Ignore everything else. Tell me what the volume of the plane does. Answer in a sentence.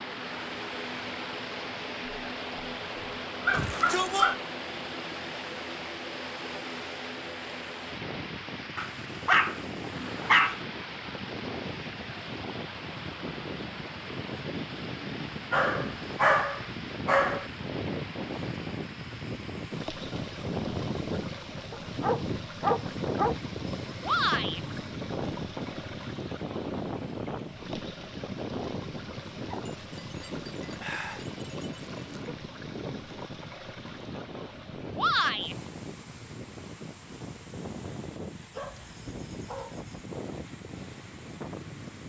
The loudness of the plane goes up, then down.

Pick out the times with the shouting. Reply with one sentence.
The shouting can be heard from 3.5 to 4.3 s, from 24.0 to 24.6 s and from 35.0 to 35.5 s.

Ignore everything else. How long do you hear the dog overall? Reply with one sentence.
You can hear the dog for 11 seconds altogether.